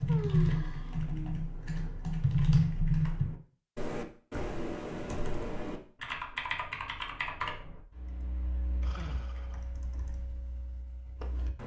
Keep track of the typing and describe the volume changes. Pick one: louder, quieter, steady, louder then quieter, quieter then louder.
quieter.